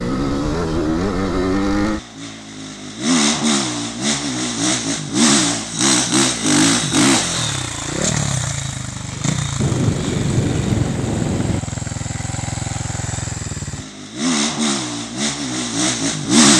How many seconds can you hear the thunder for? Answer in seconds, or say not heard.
2 s.